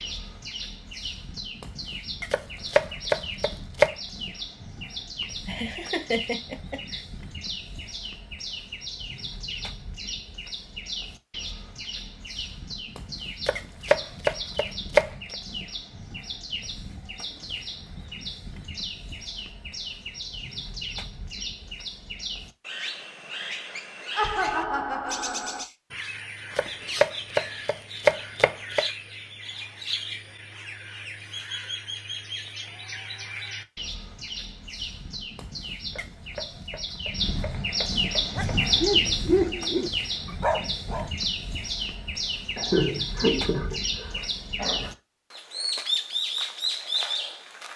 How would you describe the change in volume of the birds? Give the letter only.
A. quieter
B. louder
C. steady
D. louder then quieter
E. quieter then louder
B.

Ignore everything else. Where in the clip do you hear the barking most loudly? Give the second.
39 s.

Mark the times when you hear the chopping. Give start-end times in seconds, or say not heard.
2.3-3.9, 13.4-15.3, 26.6-28.9, 35.9-38.5.